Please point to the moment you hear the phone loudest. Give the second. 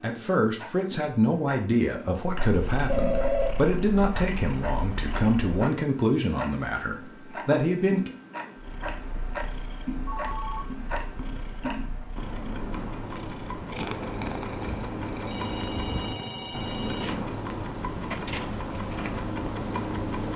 3 s.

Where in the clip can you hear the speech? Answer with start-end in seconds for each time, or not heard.
0.0-8.1.